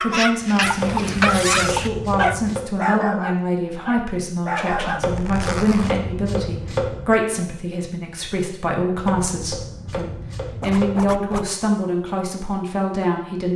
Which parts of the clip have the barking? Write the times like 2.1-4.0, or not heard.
0.0-5.0.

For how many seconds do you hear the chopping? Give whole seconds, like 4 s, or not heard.
6 s.